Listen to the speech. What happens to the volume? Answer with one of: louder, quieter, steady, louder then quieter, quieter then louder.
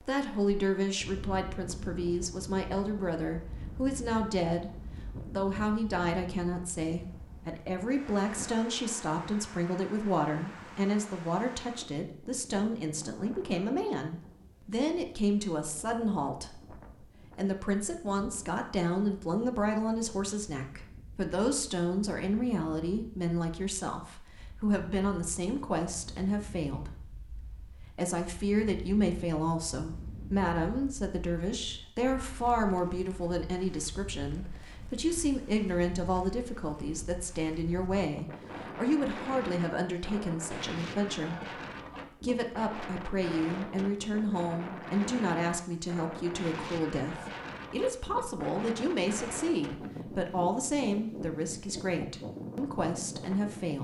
steady.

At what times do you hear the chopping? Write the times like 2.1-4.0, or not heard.
not heard.